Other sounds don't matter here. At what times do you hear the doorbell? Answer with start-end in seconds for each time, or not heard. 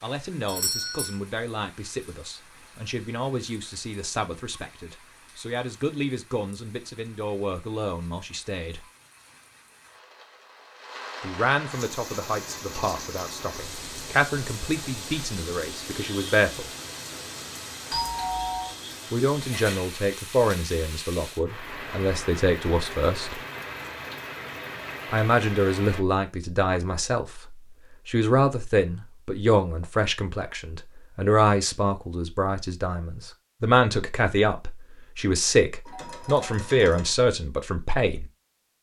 0.5-1.1, 17.9-18.8, 35.9-37.1.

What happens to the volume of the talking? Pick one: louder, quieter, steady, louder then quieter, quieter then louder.
louder.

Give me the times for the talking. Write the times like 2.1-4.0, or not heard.
0.0-8.8, 11.2-16.7, 19.1-23.4, 25.1-38.3.